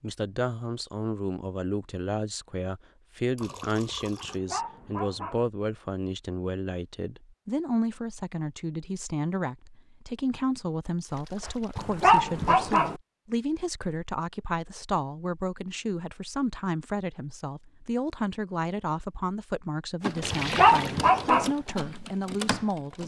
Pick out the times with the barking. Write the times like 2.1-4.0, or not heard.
4.2-5.5, 11.8-12.9, 20.3-21.6.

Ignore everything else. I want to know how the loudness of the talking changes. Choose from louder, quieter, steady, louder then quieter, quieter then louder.
steady.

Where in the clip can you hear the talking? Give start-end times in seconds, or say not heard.
0.0-23.0.